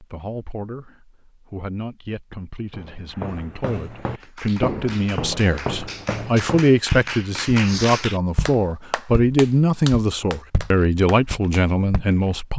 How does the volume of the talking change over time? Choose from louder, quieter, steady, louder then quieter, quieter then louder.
louder.